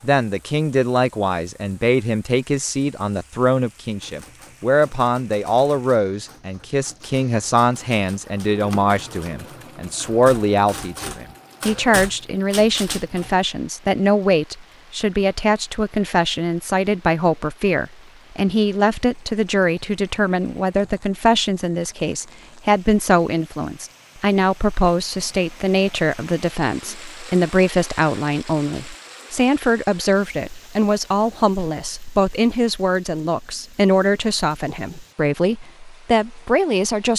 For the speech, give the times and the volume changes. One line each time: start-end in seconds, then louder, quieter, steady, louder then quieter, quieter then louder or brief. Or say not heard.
0.0-37.1 steady.